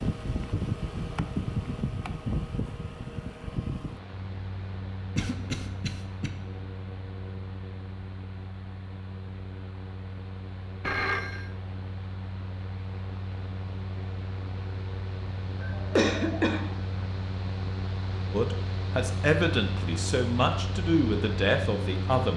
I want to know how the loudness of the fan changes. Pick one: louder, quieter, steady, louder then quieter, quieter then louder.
quieter then louder.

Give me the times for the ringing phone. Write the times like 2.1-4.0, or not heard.
10.8-11.5.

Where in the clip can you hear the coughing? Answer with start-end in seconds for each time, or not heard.
5.2-6.3, 15.6-16.8.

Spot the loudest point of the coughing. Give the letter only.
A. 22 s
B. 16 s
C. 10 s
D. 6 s
B.